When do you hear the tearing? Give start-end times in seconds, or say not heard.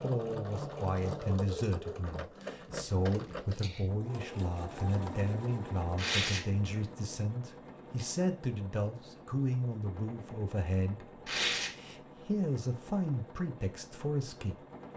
0.9-2.5, 6.0-6.4, 11.2-11.7.